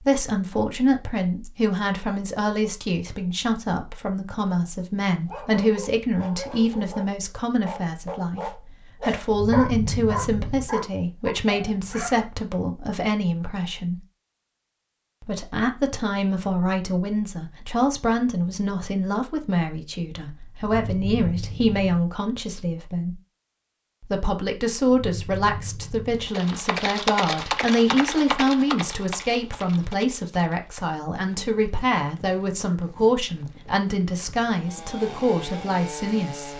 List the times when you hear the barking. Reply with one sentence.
You can hear the barking from 5.2 to 12.3 s.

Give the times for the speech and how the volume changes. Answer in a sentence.
The speech can be heard from 0.1 to 13.9 s, at a steady volume; from 15.2 to 23.1 s, at a steady volume; and from 24.0 to 36.5 s, at a steady volume.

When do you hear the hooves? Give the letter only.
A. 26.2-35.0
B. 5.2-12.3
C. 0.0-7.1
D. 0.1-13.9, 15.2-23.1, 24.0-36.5
A.